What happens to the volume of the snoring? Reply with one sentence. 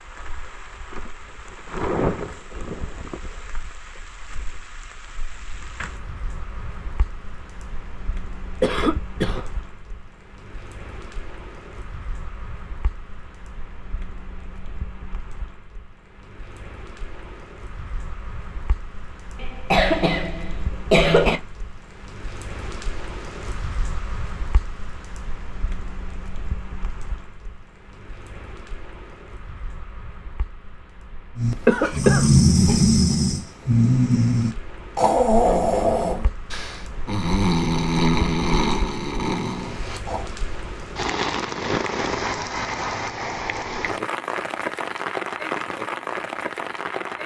The volume of the snoring goes down.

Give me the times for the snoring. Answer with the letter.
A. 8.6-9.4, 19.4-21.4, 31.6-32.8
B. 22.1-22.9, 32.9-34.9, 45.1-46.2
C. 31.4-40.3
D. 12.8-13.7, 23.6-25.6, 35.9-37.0
C.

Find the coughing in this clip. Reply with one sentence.
The coughing can be heard from 8.6 to 9.4 s, from 19.4 to 21.4 s and from 31.6 to 32.8 s.